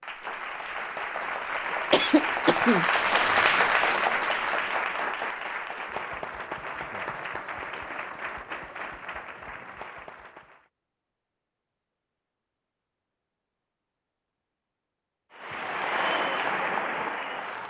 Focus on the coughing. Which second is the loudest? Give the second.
2 s.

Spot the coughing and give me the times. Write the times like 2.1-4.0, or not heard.
1.9-3.6.